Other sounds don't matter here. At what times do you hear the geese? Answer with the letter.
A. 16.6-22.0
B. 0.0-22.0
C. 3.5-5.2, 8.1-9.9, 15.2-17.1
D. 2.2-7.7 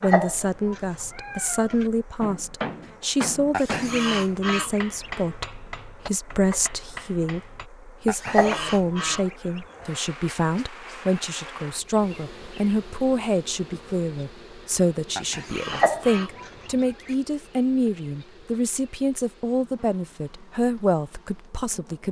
C.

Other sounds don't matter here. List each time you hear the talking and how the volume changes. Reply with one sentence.
The talking can be heard from 0.0 to 22.0 s, at a steady volume.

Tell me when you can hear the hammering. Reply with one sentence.
You can hear the hammering from 2.2 to 7.7 s.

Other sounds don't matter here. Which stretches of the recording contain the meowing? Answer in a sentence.
You can hear the meowing from 0.0 to 1.9 s, from 8.2 to 9.2 s and from 15.7 to 16.7 s.